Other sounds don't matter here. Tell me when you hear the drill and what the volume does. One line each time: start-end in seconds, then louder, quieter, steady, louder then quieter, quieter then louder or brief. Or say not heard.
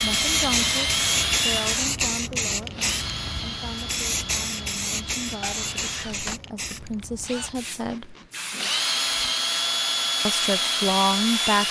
0.0-11.6 quieter then louder.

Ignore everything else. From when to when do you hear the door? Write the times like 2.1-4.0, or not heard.
5.4-6.3.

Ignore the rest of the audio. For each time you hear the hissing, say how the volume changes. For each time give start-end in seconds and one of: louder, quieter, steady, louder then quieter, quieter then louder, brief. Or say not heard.
0.0-11.6 quieter.